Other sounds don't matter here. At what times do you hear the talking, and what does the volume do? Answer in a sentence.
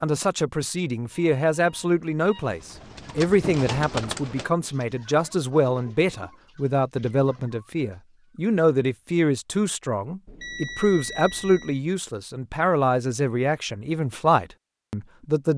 The talking can be heard from 0.0 to 15.5 s, at a steady volume.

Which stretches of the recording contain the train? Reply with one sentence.
You can't hear the train here.